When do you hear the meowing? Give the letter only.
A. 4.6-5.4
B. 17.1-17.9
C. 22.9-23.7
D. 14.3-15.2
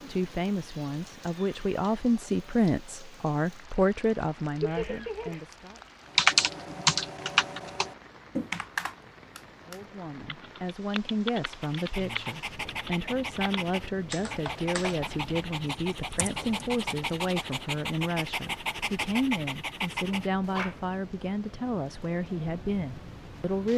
A.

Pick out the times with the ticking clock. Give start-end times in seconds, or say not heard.
not heard.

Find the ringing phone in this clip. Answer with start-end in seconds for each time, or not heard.
not heard.